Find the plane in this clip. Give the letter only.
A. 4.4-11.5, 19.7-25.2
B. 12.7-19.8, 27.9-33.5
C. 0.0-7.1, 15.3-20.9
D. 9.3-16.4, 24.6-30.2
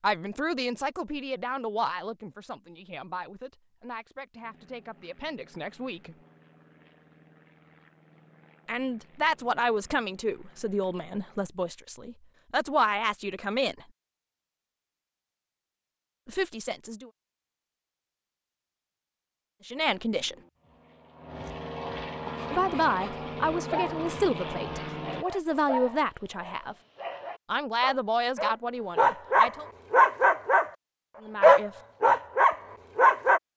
A.